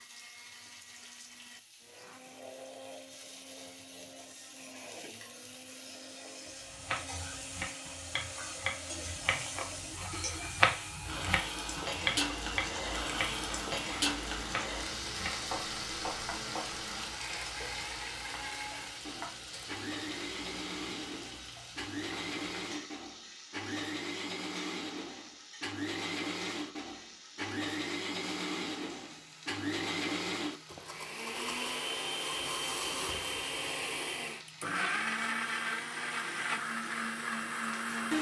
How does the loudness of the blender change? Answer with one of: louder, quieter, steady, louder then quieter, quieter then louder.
louder.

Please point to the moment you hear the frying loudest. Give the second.
14 s.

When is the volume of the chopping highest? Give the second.
11 s.